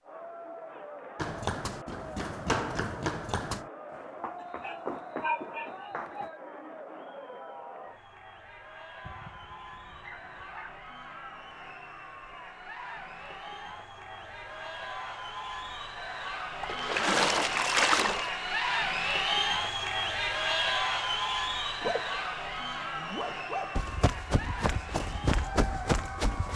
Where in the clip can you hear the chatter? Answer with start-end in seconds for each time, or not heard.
0.0-26.5.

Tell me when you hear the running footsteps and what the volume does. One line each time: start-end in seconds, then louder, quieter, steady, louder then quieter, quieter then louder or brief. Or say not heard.
1.1-6.3 louder then quieter
23.8-26.5 brief.